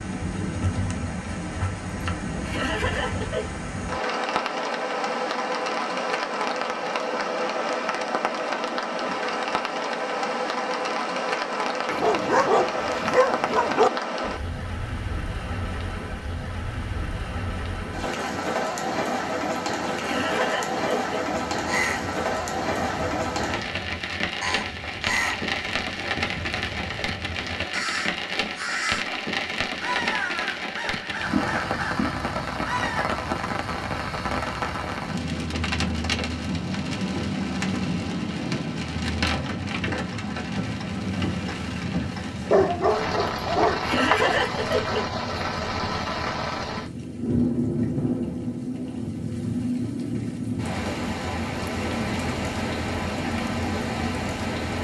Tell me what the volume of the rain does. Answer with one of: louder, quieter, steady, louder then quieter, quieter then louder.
steady.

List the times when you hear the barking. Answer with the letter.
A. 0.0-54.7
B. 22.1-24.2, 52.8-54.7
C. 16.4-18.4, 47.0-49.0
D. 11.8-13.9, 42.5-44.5
D.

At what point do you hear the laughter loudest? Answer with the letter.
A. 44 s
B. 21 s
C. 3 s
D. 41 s
A.